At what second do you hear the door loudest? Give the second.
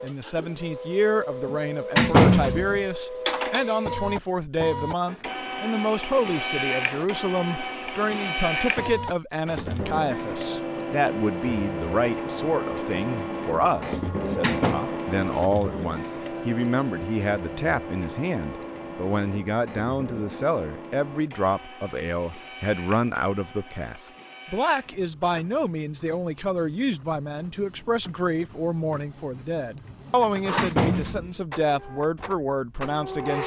2 s.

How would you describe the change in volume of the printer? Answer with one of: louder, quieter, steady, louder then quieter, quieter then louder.
quieter.